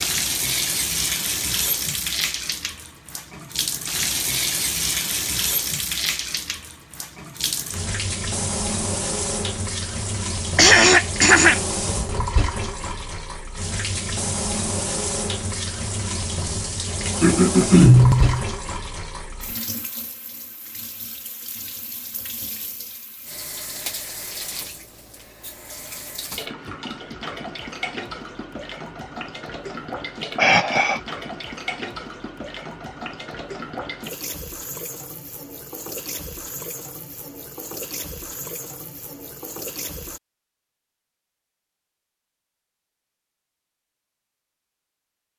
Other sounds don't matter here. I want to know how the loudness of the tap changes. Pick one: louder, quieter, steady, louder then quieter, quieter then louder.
quieter.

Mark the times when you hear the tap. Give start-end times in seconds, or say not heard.
0.0-40.2.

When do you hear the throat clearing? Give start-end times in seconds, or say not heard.
10.6-11.6, 17.2-18.4, 30.4-31.0.